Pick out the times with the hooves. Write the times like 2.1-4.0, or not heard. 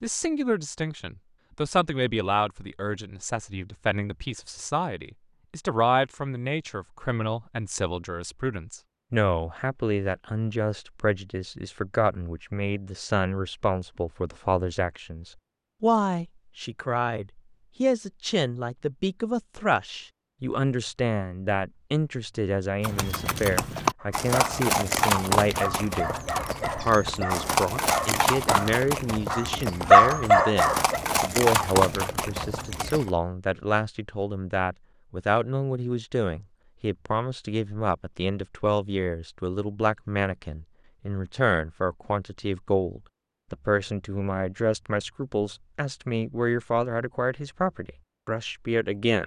22.8-33.1.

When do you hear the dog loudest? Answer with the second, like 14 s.
30 s.